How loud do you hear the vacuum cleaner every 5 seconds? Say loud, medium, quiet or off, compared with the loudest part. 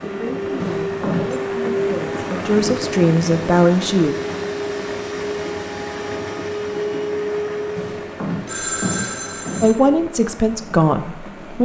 loud, loud, off.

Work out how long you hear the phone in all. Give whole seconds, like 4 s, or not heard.
3 s.